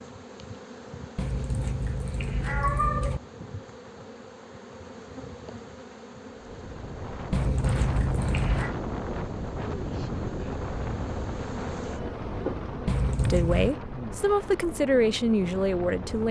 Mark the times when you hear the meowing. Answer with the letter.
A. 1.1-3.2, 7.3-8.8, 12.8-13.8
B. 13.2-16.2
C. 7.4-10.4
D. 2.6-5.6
A.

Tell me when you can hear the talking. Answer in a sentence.
The talking can be heard from 13.2 to 16.2 s.